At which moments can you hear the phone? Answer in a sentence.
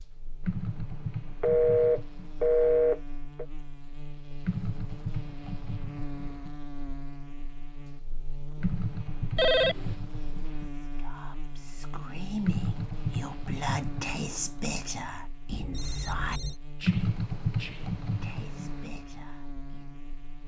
The phone can be heard from 1.4 to 3.5 s, from 9.3 to 9.9 s and from 15.5 to 16.6 s.